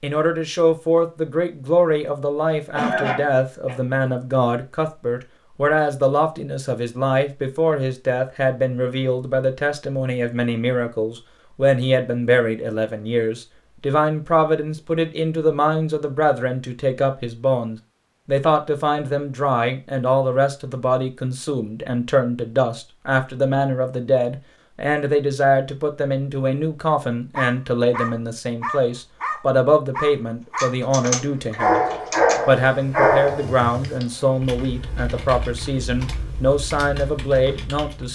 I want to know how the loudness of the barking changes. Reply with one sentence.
The volume of the barking goes up, then down.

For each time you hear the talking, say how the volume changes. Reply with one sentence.
The talking can be heard from 0.0 to 31.8 s, at a steady volume; and from 32.5 to 38.1 s, at a steady volume.